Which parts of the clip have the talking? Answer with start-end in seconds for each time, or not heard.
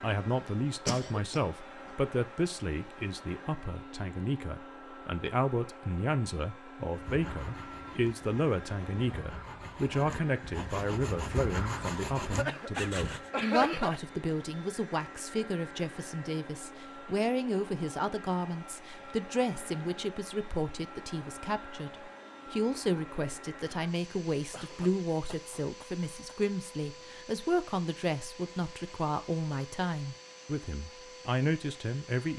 0.0-32.3.